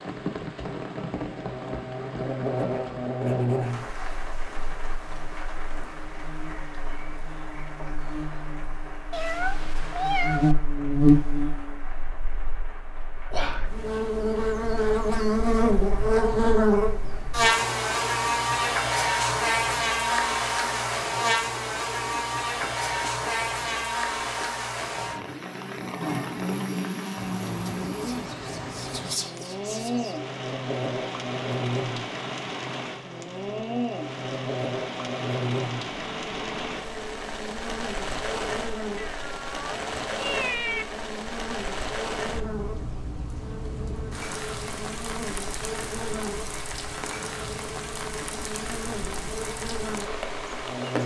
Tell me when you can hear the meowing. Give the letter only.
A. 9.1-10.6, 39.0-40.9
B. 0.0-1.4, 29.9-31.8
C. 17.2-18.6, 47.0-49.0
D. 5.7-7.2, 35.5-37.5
A.